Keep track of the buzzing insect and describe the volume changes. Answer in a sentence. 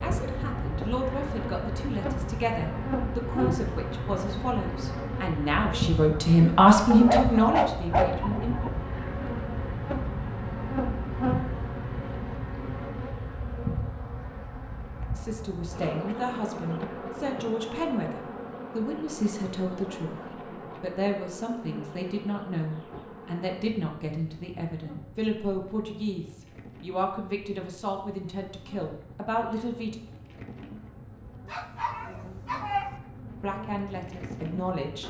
The loudness of the buzzing insect goes down.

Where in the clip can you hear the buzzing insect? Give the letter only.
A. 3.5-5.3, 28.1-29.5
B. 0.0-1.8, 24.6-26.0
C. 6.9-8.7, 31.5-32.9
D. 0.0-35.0
D.